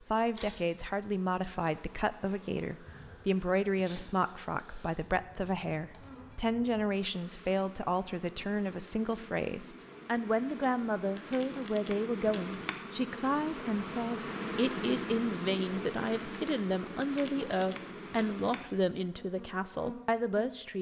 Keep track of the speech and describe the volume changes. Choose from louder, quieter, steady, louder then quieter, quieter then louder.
steady.